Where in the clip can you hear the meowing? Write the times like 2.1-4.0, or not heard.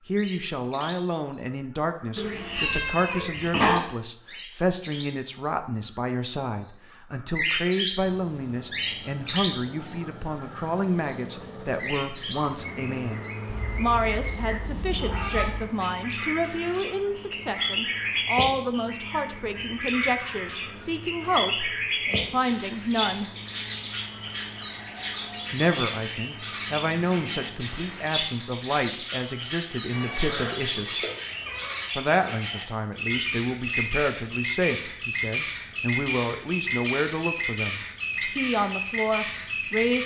2.1-3.8, 13.5-15.5, 29.9-31.8.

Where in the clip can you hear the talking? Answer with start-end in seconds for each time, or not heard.
0.1-23.3, 25.5-31.1, 31.9-40.0.